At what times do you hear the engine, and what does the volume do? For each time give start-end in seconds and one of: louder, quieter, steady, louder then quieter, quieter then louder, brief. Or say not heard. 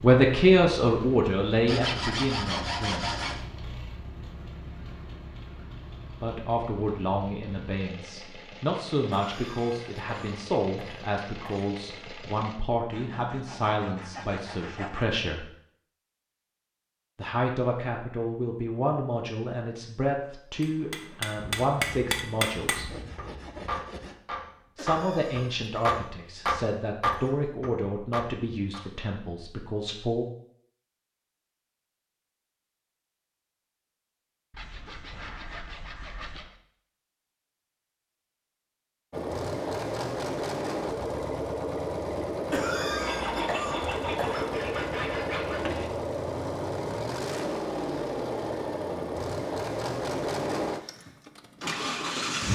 0.0-12.6 steady
39.1-52.5 steady.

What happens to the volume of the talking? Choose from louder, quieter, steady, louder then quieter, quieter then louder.
quieter.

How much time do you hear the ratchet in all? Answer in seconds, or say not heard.
not heard.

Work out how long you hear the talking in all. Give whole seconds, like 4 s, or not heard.
24 s.